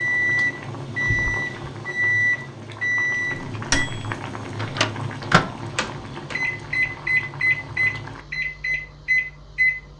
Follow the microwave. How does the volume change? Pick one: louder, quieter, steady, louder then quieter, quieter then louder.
steady.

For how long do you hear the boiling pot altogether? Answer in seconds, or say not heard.
8 s.